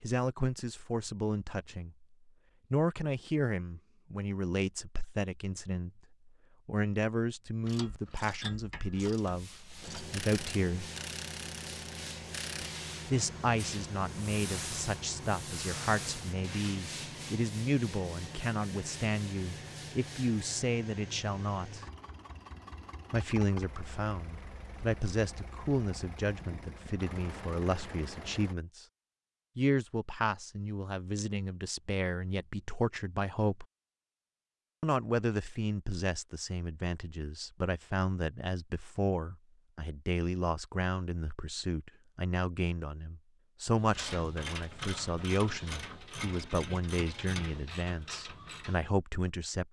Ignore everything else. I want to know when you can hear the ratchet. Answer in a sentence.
The ratchet can be heard from 7.6 to 12.7 s and from 43.8 to 48.8 s.